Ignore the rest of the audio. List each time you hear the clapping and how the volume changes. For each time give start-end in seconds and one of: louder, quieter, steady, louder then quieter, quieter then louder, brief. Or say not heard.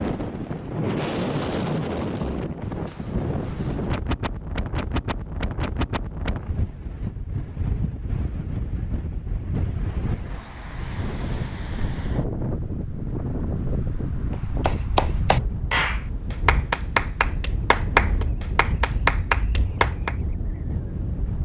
14.3-20.1 steady.